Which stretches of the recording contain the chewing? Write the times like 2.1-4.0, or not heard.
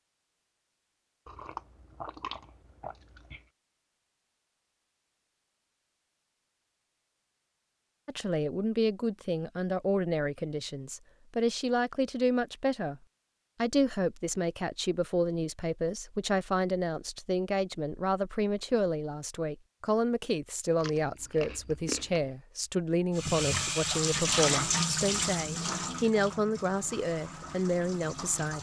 1.2-3.5, 20.8-22.2.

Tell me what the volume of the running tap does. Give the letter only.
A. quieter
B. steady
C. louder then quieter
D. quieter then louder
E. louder
A.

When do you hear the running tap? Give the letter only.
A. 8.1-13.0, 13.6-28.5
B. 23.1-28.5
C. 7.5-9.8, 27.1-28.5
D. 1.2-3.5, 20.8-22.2
B.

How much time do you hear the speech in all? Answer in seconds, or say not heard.
20 s.